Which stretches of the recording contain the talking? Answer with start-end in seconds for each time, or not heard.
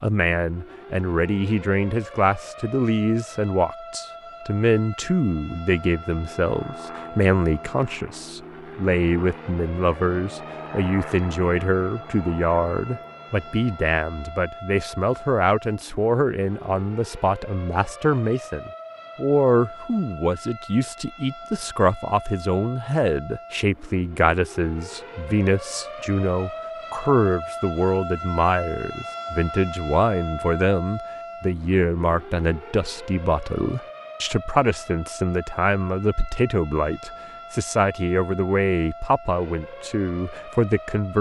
0.0-41.1.